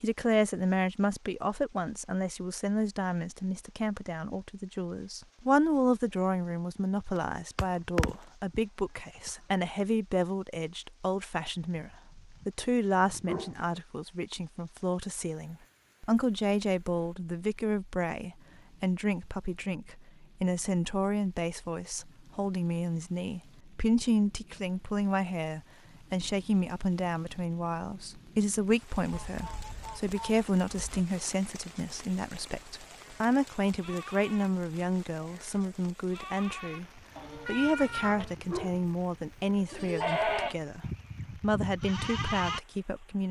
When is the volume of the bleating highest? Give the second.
40 s.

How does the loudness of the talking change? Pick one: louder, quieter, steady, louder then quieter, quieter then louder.
steady.